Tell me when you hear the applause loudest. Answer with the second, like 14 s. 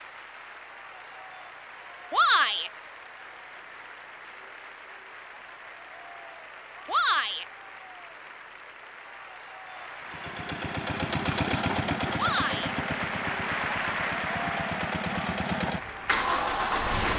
14 s.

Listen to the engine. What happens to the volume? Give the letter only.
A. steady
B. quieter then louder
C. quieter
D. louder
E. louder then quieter
B.